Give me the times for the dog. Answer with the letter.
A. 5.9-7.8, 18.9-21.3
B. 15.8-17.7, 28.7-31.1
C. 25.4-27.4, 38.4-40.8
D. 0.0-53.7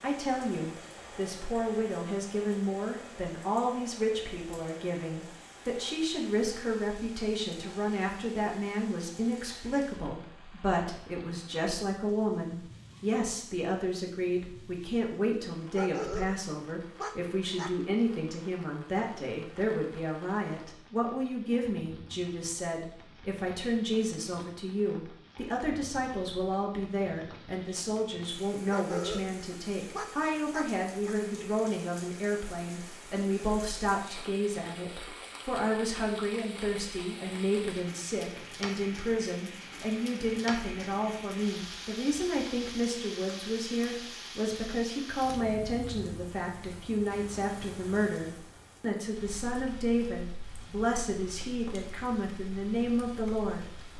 B.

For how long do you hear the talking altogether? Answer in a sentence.
The talking can be heard for 54 seconds in total.